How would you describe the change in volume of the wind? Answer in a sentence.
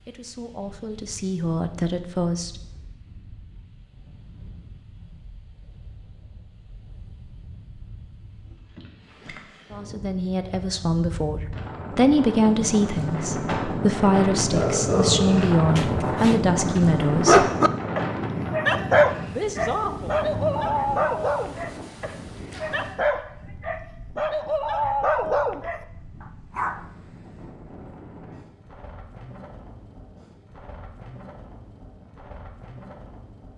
The volume of the wind goes up, then down.